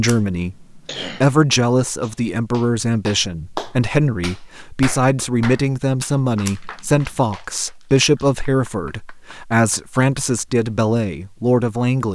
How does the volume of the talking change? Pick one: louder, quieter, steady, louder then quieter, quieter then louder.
steady.